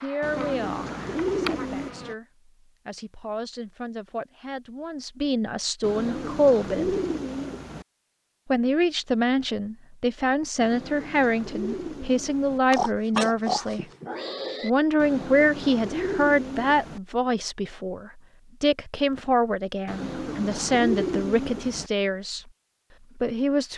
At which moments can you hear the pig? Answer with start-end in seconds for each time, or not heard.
12.7-14.7.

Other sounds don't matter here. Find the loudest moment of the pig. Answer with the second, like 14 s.
13 s.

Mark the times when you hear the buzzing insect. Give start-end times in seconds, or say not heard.
0.0-2.1.